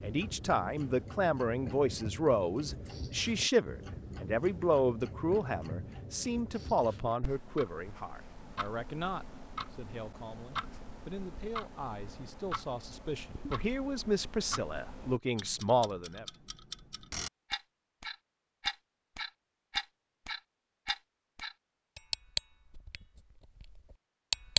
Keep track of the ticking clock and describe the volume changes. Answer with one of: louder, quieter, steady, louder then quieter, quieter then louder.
louder.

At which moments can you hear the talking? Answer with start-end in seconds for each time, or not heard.
0.0-16.2.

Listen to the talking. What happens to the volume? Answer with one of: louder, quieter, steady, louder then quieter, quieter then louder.
quieter then louder.